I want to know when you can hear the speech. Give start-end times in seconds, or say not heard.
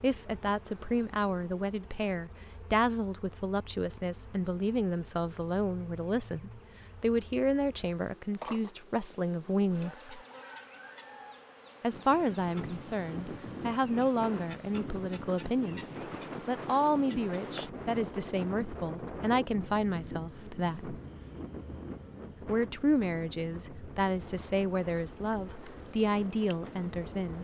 0.0-10.2, 11.8-15.8, 16.4-20.9, 22.4-27.3.